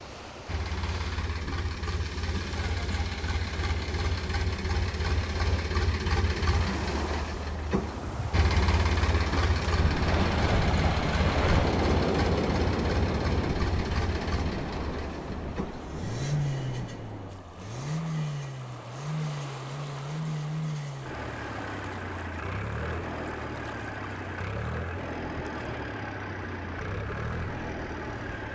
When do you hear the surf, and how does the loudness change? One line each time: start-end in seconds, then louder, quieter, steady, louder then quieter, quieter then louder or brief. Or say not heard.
0.0-28.4 louder then quieter.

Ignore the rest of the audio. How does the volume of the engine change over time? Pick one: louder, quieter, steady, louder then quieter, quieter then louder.
steady.